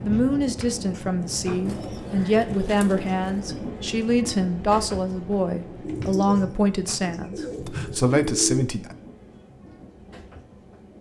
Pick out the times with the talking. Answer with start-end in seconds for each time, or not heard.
0.0-8.9.